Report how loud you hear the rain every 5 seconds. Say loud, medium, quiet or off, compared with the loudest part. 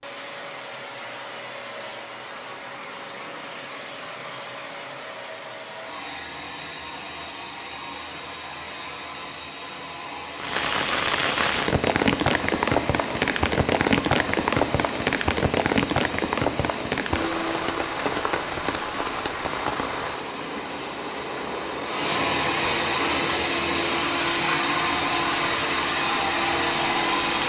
off, off, loud, loud, medium, medium.